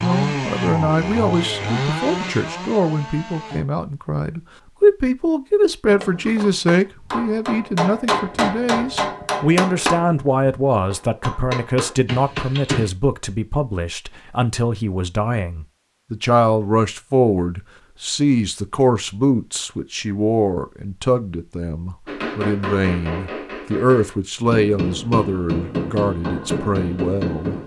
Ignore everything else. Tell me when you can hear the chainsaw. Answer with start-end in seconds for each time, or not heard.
0.0-3.6.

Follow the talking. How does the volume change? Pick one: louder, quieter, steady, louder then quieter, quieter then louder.
steady.